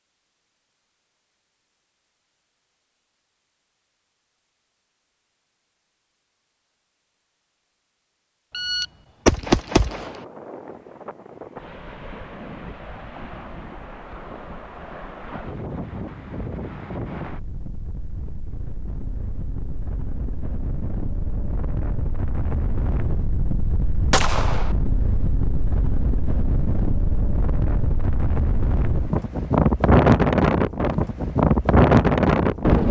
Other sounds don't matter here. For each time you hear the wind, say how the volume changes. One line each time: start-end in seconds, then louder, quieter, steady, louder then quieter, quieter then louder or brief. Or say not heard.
9.8-32.8 louder.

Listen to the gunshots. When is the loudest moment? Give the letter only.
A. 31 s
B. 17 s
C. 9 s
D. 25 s
C.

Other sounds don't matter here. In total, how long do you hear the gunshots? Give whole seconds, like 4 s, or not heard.
2 s.